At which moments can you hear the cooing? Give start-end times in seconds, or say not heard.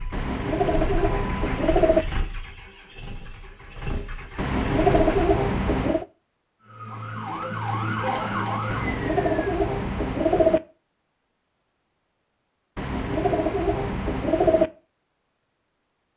0.1-2.0, 4.3-6.0, 8.7-10.6, 12.8-14.7.